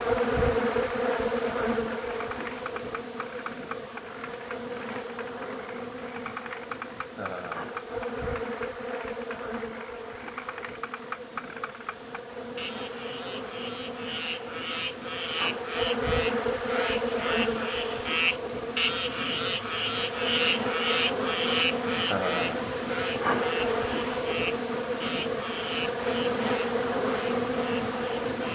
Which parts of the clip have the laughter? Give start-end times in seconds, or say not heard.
7.2-7.7, 22.1-22.6.